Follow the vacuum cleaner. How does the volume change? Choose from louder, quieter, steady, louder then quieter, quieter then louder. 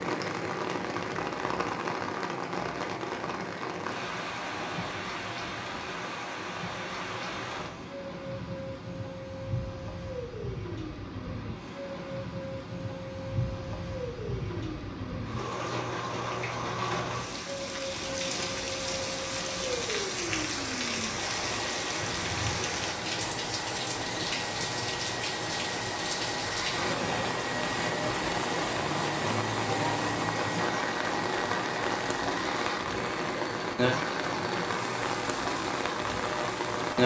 louder.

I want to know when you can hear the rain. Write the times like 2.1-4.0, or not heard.
0.0-37.0.